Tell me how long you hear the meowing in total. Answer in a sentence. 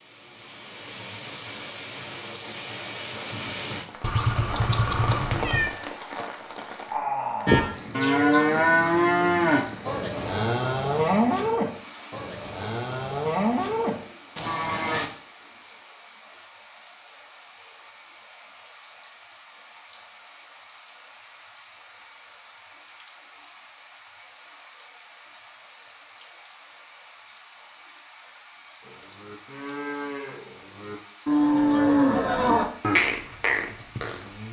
You can hear the meowing for 2 seconds altogether.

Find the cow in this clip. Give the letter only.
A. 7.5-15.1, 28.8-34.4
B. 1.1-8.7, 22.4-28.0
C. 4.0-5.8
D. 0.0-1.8
A.